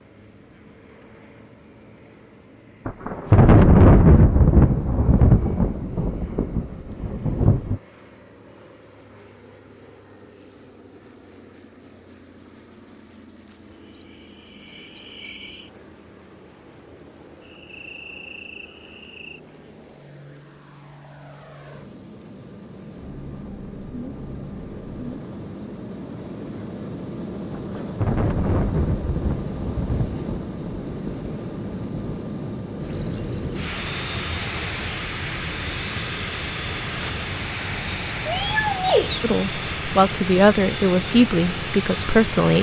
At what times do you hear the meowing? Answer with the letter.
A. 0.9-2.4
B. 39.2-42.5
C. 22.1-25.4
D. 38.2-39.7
D.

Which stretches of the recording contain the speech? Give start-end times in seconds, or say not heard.
39.2-42.5.